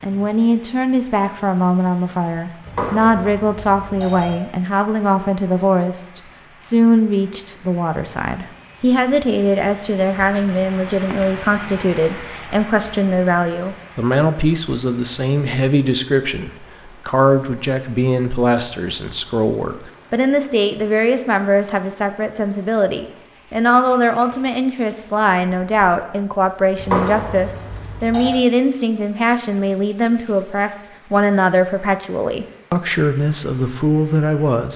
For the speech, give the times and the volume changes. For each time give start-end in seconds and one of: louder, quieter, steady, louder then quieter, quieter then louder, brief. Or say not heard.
0.0-34.7 steady.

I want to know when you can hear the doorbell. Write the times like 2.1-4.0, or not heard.
2.6-4.3, 26.8-28.4.